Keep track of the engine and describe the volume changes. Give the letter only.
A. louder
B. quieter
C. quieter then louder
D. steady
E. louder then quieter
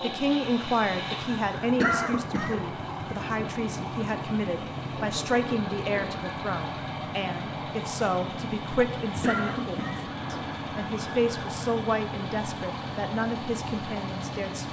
D.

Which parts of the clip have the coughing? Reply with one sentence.
The coughing can be heard from 1.8 to 2.6 s and from 9.2 to 10.6 s.